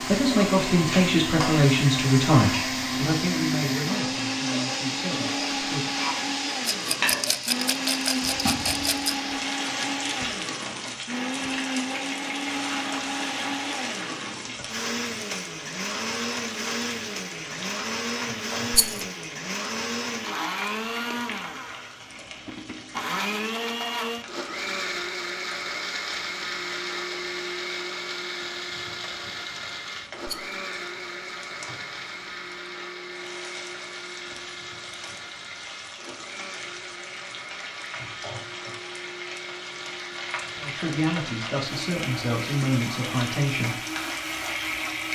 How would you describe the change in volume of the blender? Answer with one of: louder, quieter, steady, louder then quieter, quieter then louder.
quieter.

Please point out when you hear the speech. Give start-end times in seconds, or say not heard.
0.0-5.9, 40.5-43.8.